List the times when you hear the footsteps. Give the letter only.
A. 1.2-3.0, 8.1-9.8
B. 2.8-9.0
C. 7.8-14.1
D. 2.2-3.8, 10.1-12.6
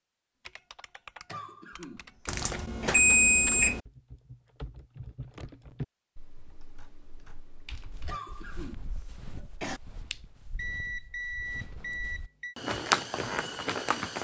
C.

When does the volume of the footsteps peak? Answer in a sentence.
The loudest moment of the footsteps is at 13 seconds.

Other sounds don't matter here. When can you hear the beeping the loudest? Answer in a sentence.
The volume of the beeping peaks at 3 seconds.